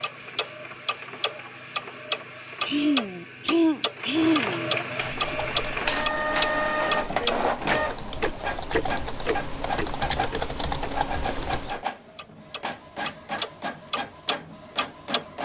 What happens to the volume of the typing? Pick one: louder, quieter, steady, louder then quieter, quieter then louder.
louder.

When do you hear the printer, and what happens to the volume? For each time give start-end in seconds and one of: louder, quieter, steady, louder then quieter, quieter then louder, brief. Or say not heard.
0.0-15.4 louder then quieter.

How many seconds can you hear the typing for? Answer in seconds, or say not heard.
7 s.